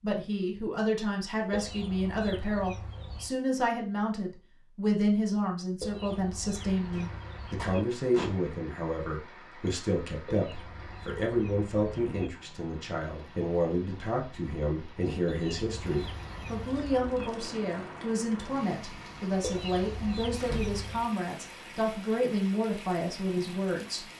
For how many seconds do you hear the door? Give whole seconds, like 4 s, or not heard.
2 s.